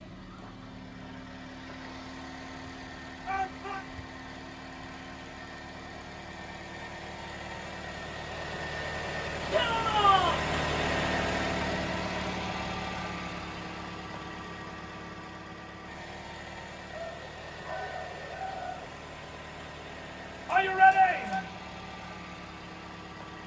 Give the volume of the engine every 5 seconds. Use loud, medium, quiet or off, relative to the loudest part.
medium, medium, loud, medium, medium.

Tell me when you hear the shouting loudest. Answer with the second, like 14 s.
21 s.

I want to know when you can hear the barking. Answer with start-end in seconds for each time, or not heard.
16.9-18.9.